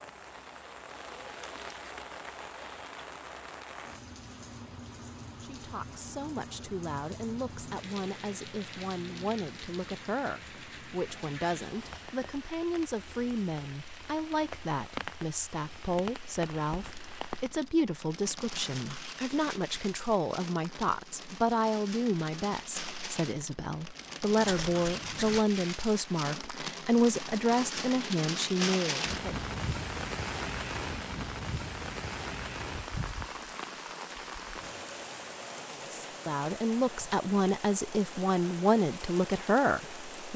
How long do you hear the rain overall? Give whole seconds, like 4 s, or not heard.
40 s.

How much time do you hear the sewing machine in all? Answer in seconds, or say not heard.
not heard.